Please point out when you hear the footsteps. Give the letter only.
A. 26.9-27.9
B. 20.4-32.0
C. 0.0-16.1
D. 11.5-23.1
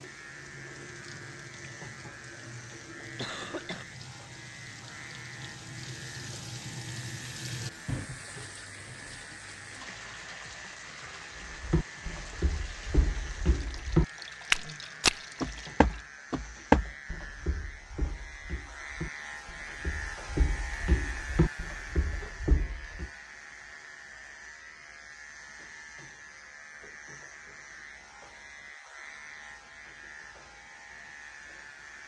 D.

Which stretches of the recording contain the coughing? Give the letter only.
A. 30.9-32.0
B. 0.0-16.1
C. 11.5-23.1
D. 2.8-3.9
D.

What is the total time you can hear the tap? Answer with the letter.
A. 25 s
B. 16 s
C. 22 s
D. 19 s
B.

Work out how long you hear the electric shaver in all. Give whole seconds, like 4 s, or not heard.
32 s.